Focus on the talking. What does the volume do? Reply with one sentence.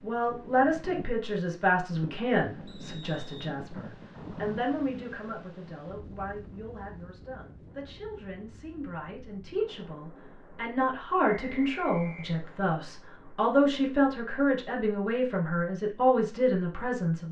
The volume of the talking goes down, then up.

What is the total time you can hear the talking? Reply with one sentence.
You can hear the talking for 17 seconds altogether.